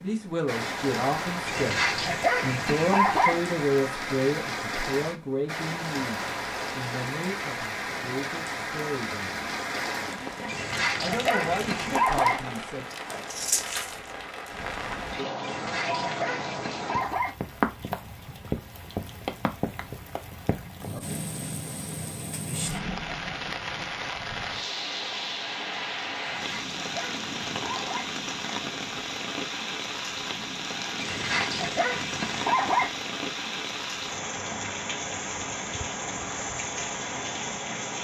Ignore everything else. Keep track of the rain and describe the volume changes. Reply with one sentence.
The loudness of the rain stays about the same.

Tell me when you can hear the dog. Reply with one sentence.
The dog can be heard from 1.4 to 3.4 s, from 10.4 to 12.4 s, from 15.4 to 17.3 s, from 26.2 to 28.1 s and from 31.0 to 32.9 s.